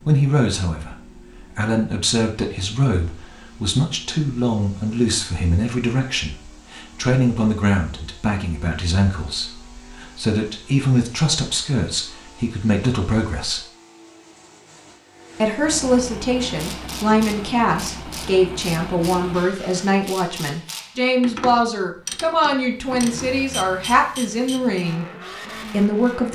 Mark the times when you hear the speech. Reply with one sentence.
The speech can be heard from 0.0 to 13.6 s, from 15.4 to 25.1 s and from 25.7 to 26.2 s.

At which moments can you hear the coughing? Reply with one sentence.
You can't hear the coughing here.